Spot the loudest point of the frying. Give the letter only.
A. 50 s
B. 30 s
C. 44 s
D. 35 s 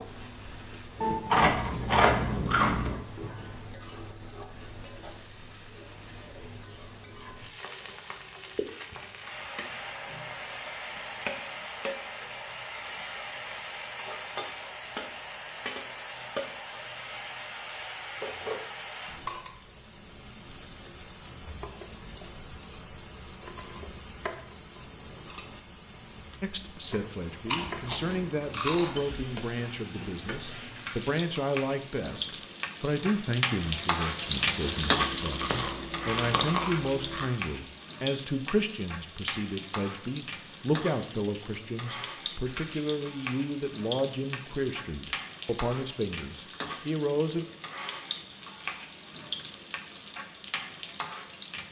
D.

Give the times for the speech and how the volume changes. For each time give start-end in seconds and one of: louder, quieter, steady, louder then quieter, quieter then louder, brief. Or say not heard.
26.4-47.5 steady.